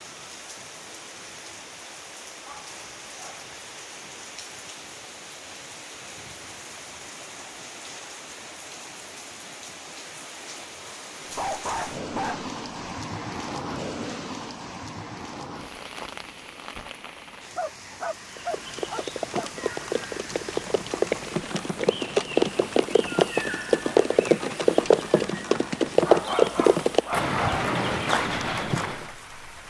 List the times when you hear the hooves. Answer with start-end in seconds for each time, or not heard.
18.4-29.1.